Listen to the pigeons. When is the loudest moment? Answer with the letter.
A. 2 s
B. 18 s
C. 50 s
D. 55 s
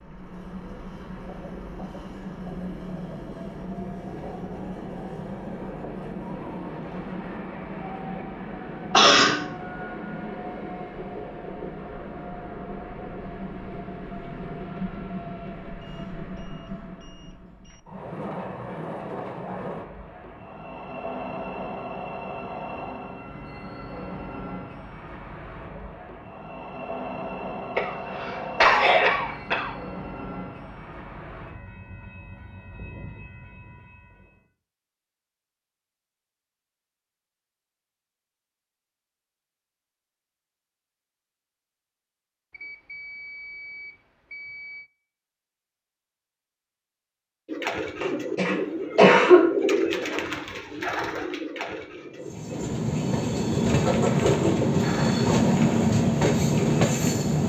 C.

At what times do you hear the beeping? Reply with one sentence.
The beeping can be heard from 15.8 to 17.8 s and from 42.5 to 44.9 s.